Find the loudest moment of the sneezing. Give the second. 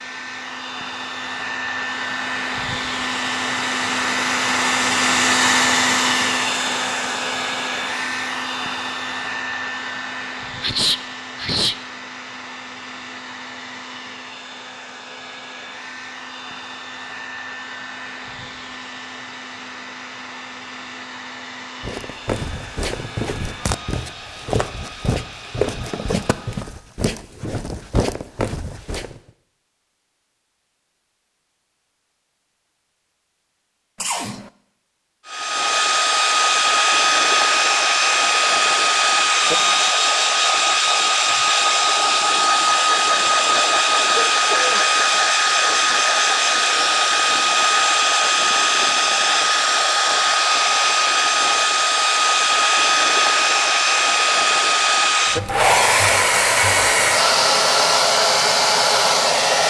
11 s.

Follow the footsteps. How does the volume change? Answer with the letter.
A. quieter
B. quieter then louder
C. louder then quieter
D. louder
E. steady
E.